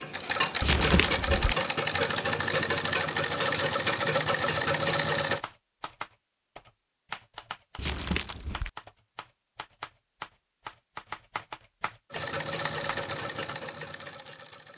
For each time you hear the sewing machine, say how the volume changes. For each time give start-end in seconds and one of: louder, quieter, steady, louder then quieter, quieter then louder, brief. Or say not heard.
0.0-5.4 steady
12.1-14.7 brief.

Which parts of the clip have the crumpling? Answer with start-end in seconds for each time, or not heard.
0.6-1.4, 7.8-8.7.